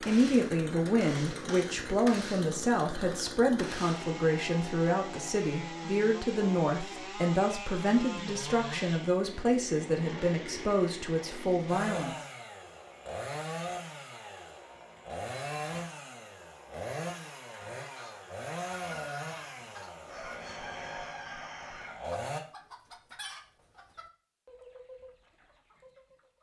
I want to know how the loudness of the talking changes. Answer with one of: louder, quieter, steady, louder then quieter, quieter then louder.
steady.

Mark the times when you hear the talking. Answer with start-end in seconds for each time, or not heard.
0.0-12.2.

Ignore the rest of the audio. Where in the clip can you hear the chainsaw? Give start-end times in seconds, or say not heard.
0.0-22.4.